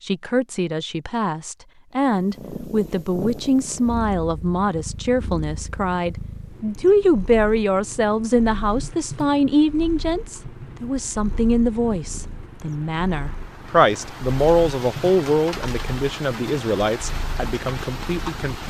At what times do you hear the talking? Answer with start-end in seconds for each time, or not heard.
0.1-18.6.